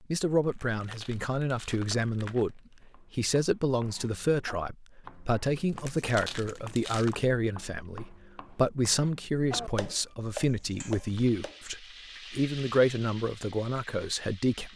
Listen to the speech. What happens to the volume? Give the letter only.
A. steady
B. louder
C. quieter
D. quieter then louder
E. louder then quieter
A.